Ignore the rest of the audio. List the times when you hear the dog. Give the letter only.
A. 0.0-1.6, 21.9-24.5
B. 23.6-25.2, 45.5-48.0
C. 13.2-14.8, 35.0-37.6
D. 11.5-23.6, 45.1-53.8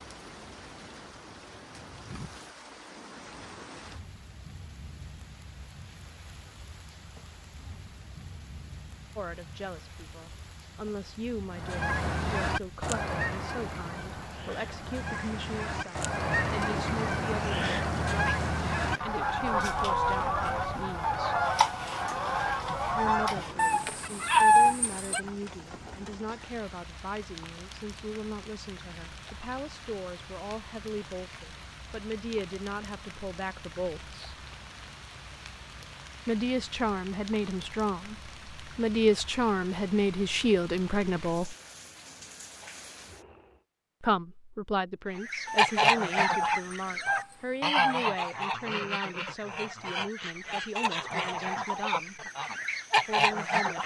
B.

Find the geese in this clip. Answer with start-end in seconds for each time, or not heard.
11.5-23.6, 45.1-53.8.